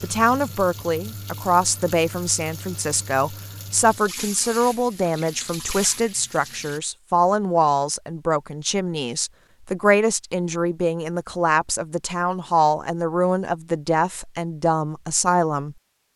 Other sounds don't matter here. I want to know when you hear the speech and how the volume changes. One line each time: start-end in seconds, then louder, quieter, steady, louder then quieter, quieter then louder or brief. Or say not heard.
0.0-15.8 steady.